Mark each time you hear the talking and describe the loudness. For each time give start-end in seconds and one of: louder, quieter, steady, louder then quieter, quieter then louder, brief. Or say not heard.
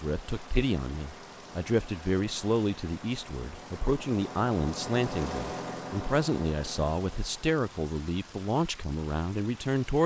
0.0-10.0 steady.